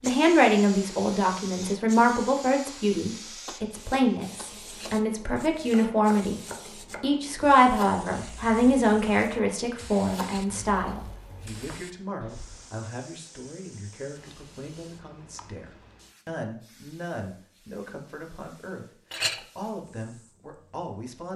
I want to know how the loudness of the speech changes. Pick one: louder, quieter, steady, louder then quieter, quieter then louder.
quieter.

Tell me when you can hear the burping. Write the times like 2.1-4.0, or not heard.
not heard.